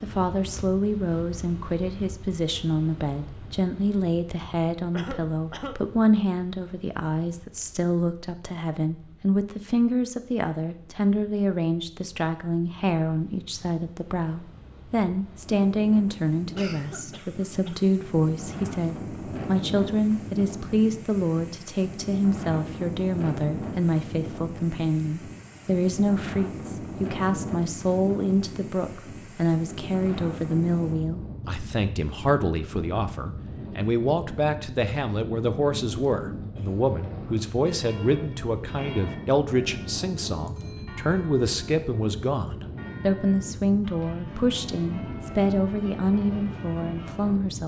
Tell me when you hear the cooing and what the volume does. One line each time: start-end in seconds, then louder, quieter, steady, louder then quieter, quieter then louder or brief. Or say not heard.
not heard.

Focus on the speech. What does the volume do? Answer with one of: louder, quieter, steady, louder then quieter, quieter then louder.
steady.